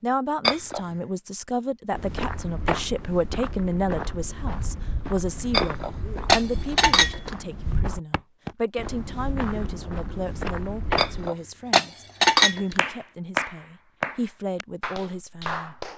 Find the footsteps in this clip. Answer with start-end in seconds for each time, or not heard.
1.9-11.3.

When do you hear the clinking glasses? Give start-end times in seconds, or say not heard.
0.4-0.8, 5.5-7.3, 10.9-12.8.